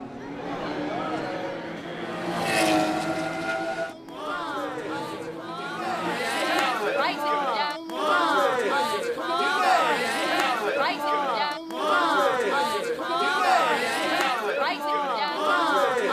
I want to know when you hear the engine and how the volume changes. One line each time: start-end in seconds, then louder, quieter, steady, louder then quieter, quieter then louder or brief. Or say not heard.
0.0-14.3 quieter.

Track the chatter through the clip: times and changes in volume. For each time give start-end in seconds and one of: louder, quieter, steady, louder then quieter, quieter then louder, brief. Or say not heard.
0.1-16.0 louder.